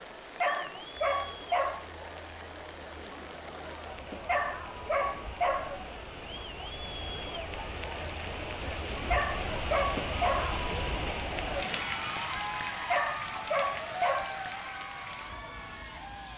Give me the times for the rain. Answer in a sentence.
The rain can be heard from 0.0 to 16.3 s.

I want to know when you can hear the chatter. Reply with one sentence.
The chatter can be heard from 0.0 to 16.3 s.